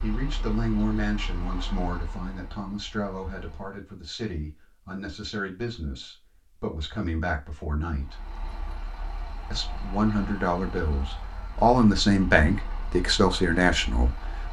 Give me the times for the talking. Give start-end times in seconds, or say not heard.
0.0-8.2, 9.5-14.4.